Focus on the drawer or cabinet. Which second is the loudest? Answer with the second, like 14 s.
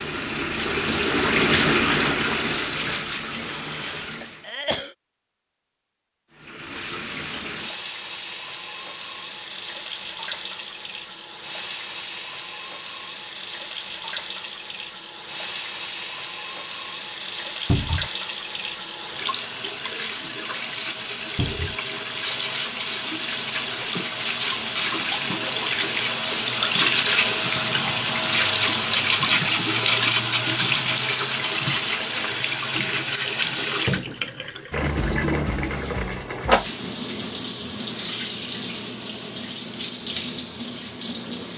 18 s.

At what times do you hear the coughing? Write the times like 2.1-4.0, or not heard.
3.4-5.0.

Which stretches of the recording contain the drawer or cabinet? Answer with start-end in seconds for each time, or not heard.
17.6-18.1, 21.4-21.8.